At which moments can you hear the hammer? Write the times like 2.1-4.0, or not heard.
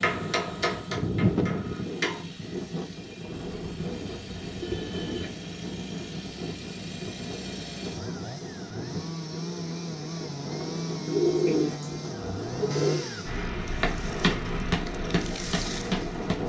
0.0-2.2, 13.2-16.4.